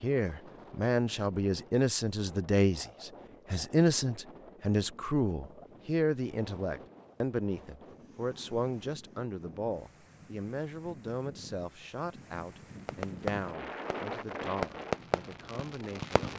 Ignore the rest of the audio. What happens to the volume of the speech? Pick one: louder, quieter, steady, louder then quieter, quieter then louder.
quieter.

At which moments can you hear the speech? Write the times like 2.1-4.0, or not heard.
0.0-16.2.